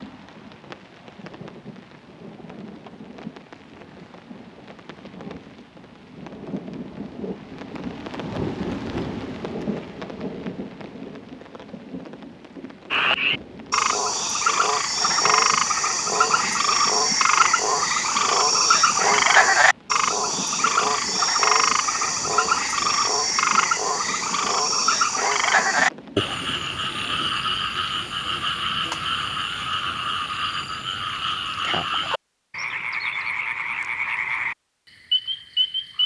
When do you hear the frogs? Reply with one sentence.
You can hear the frogs from 12.9 to 36.0 s.